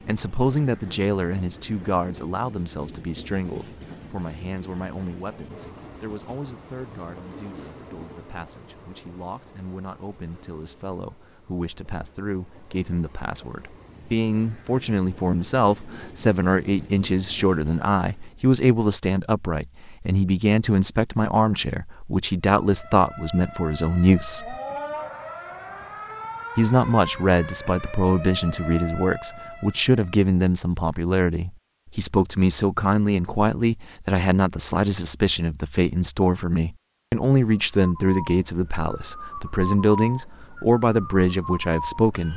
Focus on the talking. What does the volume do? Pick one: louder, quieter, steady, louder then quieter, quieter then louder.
louder.